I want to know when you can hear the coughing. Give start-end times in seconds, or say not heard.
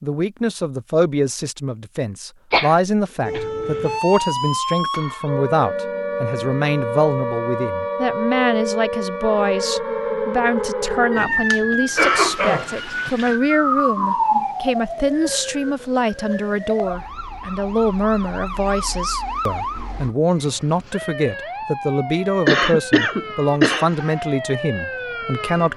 2.5-3.5, 11.9-13.3, 22.4-23.9.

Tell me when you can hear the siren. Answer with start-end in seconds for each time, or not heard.
3.2-25.7.